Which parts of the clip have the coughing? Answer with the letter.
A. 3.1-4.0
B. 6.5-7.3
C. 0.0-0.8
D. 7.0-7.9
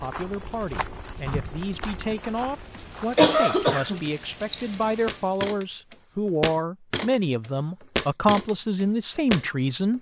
A.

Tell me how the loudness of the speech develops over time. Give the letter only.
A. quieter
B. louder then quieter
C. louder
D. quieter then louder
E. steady
C.